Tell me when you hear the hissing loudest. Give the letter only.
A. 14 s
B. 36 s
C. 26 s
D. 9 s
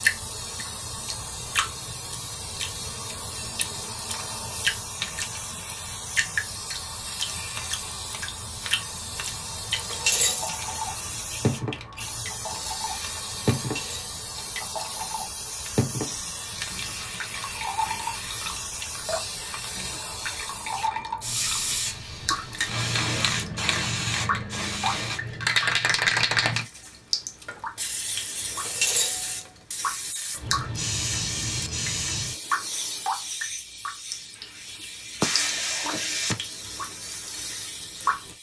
C.